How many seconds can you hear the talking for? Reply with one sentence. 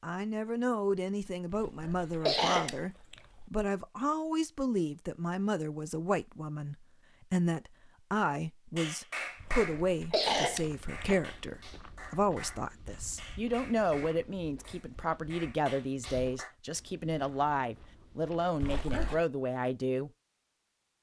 The talking can be heard for 20 seconds in total.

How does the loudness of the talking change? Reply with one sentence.
The volume of the talking stays about the same.